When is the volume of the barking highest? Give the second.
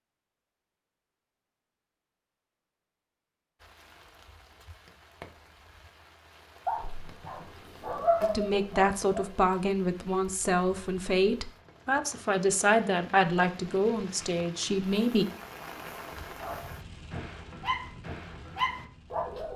8 s.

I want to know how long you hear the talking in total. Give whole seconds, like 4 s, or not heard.
7 s.